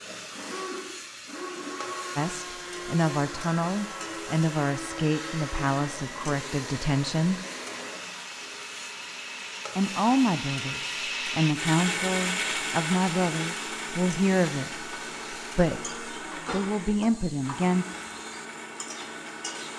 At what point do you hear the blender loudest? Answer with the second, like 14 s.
12 s.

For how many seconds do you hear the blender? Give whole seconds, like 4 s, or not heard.
20 s.